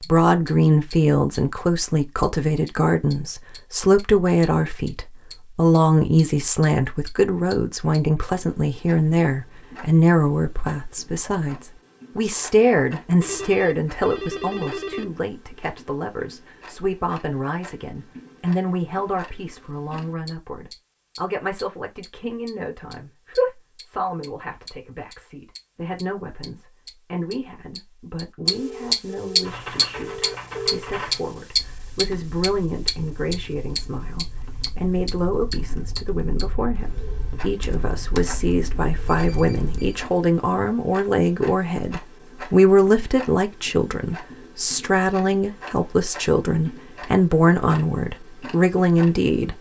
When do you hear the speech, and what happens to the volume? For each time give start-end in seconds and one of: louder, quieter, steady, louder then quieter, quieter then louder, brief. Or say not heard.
0.0-49.5 quieter then louder.